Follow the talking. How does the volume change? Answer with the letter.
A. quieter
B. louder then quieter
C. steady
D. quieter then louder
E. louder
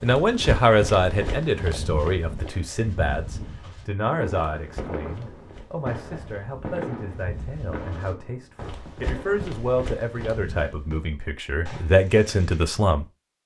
D.